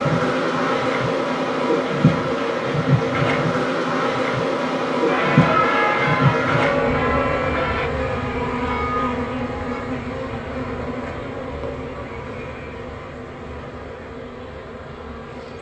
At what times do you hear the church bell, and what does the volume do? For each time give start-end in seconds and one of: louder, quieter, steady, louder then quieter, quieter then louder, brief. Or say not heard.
5.0-9.8 quieter then louder.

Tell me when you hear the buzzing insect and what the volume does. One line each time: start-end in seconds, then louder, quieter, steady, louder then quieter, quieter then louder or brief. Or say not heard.
0.0-15.5 quieter.